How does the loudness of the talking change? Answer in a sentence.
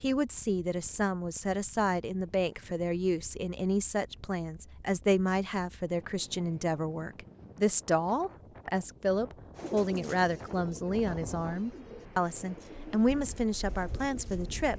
The volume of the talking stays about the same.